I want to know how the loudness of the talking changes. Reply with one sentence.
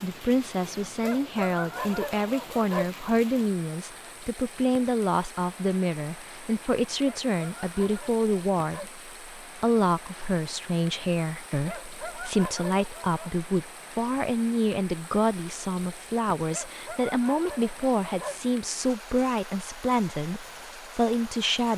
The volume of the talking stays about the same.